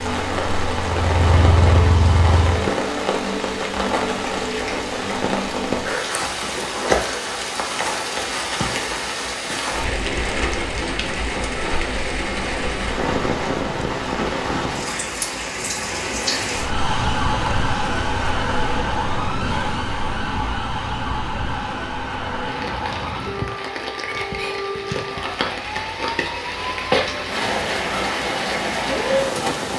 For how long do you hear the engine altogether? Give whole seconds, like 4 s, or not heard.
3 s.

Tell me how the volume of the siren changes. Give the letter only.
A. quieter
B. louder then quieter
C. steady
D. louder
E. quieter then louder
A.